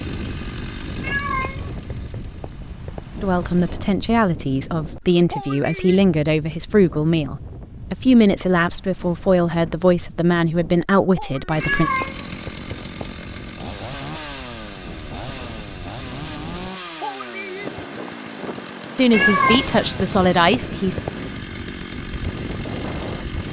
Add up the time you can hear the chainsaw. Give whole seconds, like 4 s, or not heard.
16 s.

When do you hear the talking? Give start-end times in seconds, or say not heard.
3.2-11.9, 18.9-20.9.